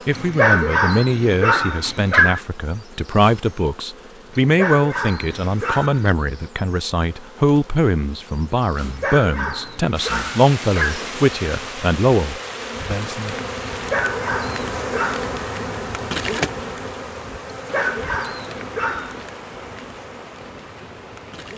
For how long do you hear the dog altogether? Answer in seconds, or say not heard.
10 s.